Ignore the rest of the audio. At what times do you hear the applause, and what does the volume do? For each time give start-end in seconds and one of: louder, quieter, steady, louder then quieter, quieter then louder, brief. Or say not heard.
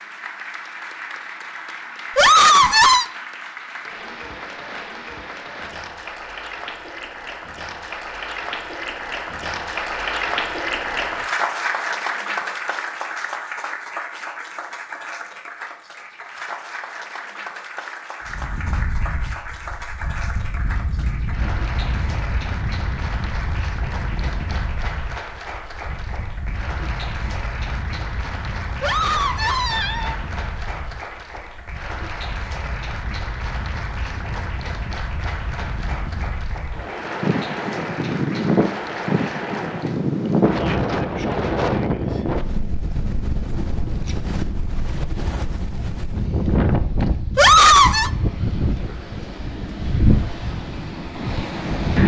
0.0-40.1 louder then quieter.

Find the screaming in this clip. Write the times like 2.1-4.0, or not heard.
2.1-3.0, 28.8-30.1, 47.4-48.1.